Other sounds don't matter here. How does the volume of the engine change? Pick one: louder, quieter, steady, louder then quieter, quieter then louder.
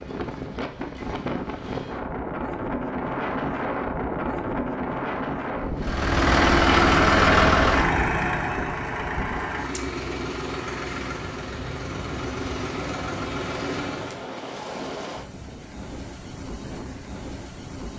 quieter.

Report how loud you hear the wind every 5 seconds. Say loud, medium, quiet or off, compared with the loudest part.
loud, loud, medium, medium.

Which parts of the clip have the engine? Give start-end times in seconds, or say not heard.
5.8-14.3.